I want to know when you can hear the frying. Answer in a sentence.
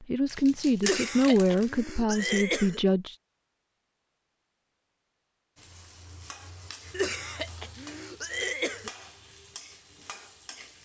You can hear the frying from 5.5 to 10.8 s.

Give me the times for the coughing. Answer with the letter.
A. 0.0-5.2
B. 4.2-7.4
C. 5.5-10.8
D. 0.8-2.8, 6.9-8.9
D.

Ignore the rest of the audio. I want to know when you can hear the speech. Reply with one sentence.
You can hear the speech from 0.0 to 3.1 s.